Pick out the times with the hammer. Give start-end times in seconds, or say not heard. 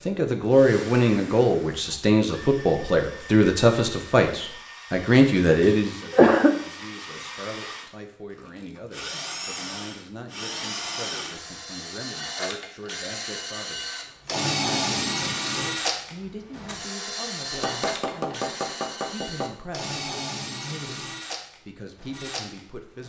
17.5-19.5.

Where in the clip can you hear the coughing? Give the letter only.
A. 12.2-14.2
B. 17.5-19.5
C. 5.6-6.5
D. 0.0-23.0
C.